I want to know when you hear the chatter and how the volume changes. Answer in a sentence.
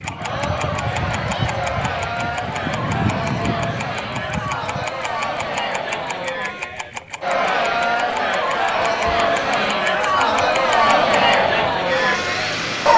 You can hear the chatter from 0.0 to 12.9 s, getting louder.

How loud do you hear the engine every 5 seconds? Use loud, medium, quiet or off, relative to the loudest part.
loud, medium, loud.